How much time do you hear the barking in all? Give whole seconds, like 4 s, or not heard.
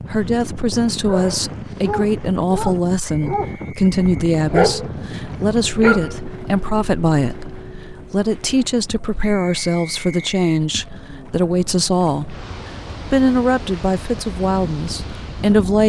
5 s.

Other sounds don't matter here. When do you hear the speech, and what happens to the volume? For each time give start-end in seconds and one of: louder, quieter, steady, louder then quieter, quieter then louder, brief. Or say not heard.
0.1-12.4 steady
13.1-15.8 brief.